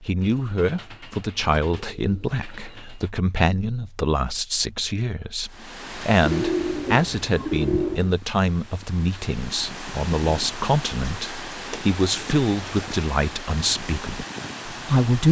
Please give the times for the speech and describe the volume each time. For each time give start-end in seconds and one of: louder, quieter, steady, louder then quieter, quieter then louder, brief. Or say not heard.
0.0-15.2 steady.